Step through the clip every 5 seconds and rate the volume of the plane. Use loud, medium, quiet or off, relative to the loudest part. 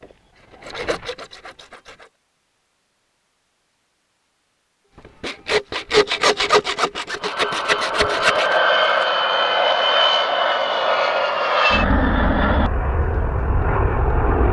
off, loud, loud.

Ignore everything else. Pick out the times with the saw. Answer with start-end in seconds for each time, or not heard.
0.0-2.1, 5.0-8.6.